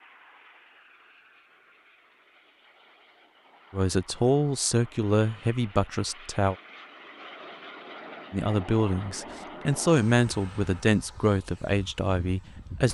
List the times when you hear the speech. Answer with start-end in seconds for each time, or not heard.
3.7-6.5, 8.3-12.8.